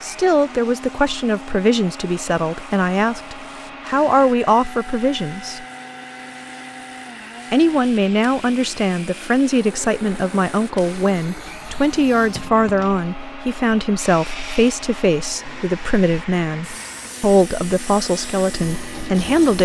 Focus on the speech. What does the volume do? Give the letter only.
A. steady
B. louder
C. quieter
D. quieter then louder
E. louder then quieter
A.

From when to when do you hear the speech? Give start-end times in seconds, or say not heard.
0.0-5.7, 7.5-19.5.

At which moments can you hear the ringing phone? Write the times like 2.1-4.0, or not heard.
not heard.